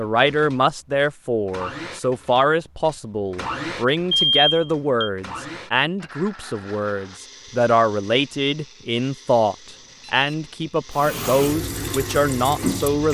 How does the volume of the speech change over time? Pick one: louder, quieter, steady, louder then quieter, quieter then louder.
steady.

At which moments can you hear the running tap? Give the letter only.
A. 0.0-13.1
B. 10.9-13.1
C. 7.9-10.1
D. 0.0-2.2
B.